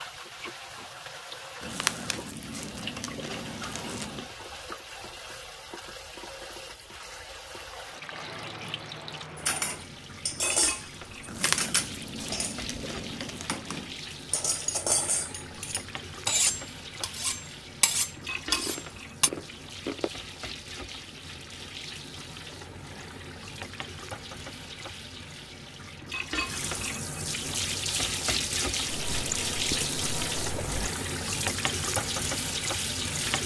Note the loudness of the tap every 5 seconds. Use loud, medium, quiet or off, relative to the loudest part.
medium, medium, medium, medium, medium, loud, loud.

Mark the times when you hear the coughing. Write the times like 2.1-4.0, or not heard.
not heard.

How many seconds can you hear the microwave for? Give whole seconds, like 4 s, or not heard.
not heard.